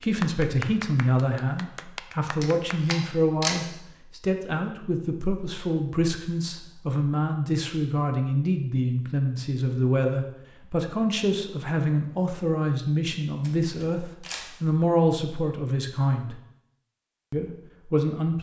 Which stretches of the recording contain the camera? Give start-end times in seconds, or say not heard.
2.2-3.6, 13.4-14.6.